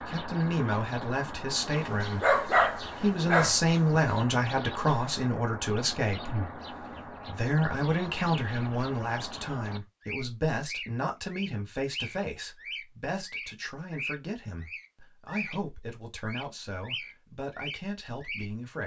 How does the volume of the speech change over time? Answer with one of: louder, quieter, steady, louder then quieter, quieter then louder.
quieter.